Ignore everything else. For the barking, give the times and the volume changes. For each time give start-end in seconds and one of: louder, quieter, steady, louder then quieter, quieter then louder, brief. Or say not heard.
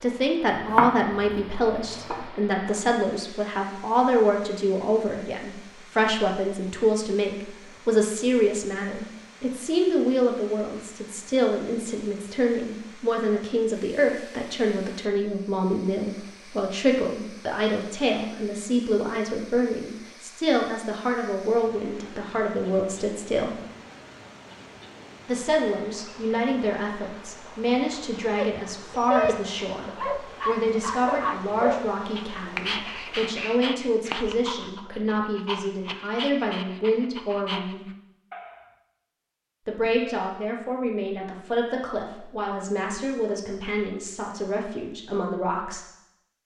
28.2-38.6 quieter.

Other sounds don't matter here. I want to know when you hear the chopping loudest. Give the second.
1 s.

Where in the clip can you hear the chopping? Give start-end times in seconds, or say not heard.
0.5-2.2.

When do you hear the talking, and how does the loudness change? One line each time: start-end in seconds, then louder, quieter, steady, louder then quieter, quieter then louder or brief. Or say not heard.
0.0-23.6 steady
25.2-37.9 steady
39.6-45.9 steady.